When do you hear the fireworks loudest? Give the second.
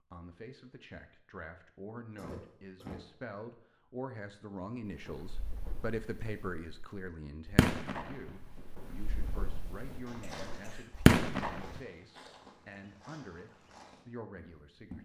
11 s.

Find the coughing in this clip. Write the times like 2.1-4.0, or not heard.
2.1-3.0, 10.1-10.8.